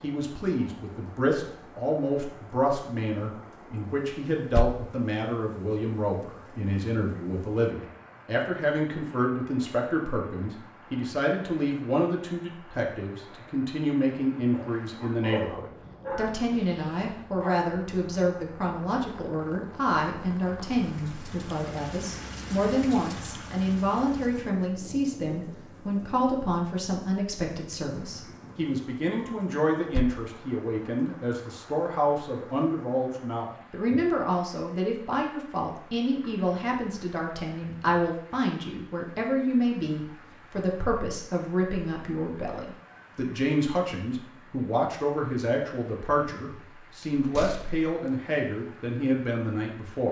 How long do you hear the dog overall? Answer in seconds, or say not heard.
3 s.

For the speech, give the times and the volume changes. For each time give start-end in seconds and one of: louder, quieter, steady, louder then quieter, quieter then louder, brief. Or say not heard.
0.0-50.0 steady.